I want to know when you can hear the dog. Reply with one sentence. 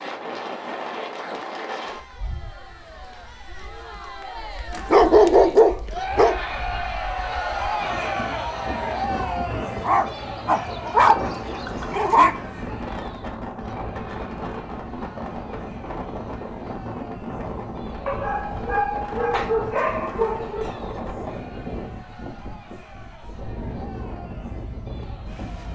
You can hear the dog from 4.7 to 6.3 s, from 9.8 to 12.3 s and from 18.1 to 20.7 s.